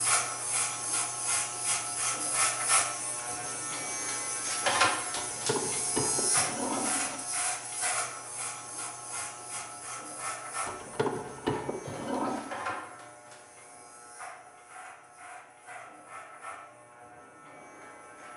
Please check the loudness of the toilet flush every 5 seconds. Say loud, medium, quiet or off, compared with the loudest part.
off, loud, loud, off.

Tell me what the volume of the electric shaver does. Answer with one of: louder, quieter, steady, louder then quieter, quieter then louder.
quieter.